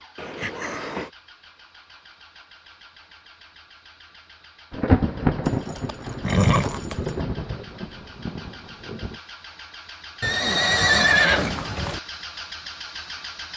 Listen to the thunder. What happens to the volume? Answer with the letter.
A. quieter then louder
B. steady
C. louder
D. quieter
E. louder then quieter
D.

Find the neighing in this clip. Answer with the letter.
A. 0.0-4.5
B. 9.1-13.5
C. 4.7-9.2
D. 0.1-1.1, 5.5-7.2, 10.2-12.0
D.